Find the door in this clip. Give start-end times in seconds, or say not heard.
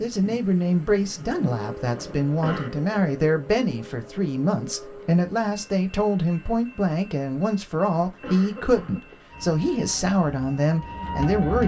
not heard.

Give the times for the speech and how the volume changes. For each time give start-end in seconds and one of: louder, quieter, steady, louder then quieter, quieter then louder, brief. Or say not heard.
0.0-11.6 steady.